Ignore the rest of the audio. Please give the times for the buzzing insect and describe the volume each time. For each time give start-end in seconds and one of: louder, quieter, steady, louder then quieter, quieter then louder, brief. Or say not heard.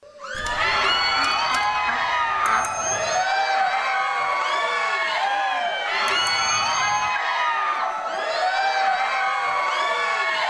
not heard.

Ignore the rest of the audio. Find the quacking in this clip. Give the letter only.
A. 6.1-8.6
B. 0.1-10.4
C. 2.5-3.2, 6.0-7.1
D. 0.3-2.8
D.